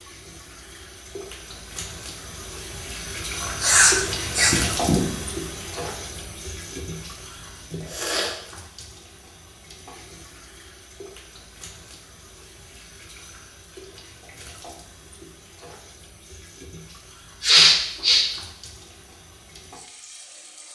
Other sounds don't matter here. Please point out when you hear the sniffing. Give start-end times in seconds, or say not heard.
3.4-5.1, 7.8-8.3, 17.4-18.2.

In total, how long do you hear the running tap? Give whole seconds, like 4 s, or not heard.
21 s.